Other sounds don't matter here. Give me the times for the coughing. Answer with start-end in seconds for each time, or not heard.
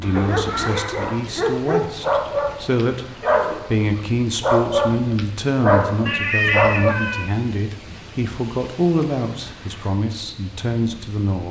not heard.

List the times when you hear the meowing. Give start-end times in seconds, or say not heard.
0.0-0.8, 6.0-7.3.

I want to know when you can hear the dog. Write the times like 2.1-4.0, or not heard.
0.1-7.0.